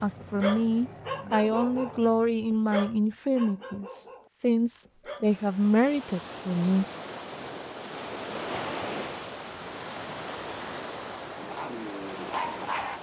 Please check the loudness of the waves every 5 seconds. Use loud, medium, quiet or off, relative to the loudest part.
off, loud, loud.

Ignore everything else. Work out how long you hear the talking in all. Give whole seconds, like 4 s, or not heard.
7 s.